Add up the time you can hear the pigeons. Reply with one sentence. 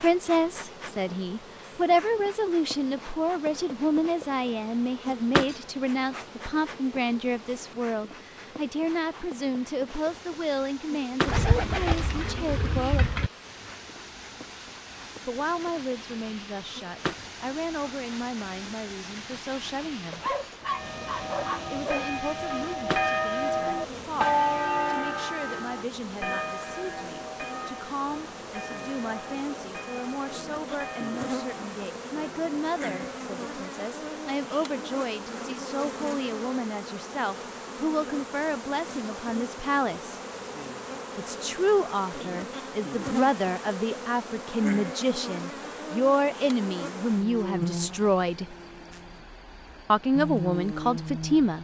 You can hear the pigeons for 2 seconds altogether.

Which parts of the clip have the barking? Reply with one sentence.
The barking can be heard from 20.1 to 22.1 s.